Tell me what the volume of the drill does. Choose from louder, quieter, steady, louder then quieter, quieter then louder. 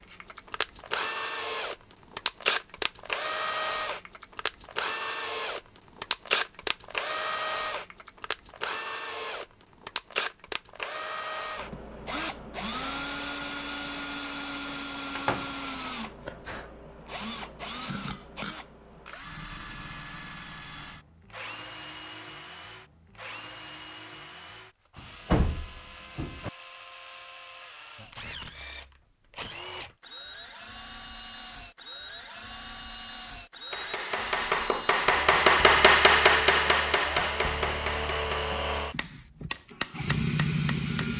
quieter then louder.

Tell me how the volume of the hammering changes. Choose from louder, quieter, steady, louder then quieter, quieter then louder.
louder then quieter.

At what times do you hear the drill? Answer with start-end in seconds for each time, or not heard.
0.1-41.1.